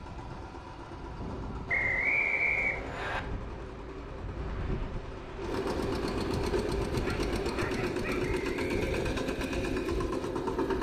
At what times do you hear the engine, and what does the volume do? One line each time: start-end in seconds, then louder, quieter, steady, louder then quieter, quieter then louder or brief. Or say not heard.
0.0-10.7 louder.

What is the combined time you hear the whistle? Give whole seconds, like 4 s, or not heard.
2 s.